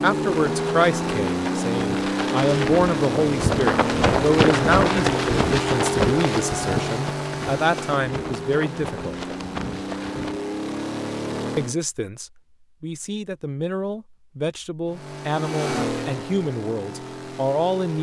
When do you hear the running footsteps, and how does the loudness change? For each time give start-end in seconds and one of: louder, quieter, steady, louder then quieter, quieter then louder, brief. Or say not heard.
0.1-10.4 louder then quieter.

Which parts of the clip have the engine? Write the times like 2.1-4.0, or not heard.
0.0-11.8, 14.8-17.9.